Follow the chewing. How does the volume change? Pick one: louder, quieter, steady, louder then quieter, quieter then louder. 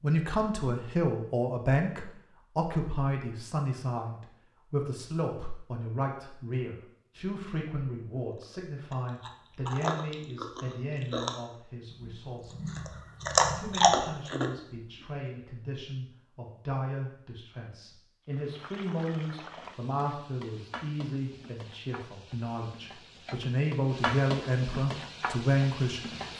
quieter then louder.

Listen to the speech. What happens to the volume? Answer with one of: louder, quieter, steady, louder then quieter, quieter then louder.
quieter then louder.